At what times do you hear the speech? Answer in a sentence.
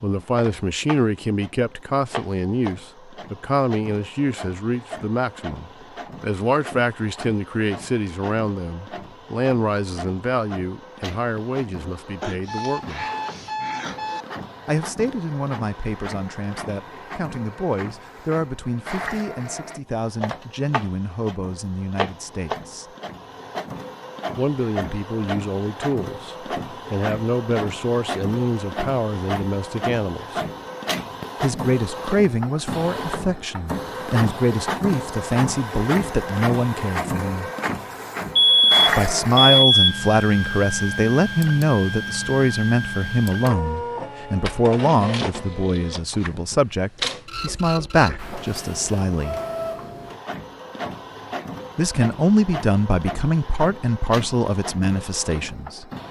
You can hear the speech from 0.0 to 13.1 s, from 14.7 to 22.9 s, from 24.4 to 30.4 s, from 31.4 to 37.5 s, from 38.9 to 49.4 s and from 51.8 to 55.9 s.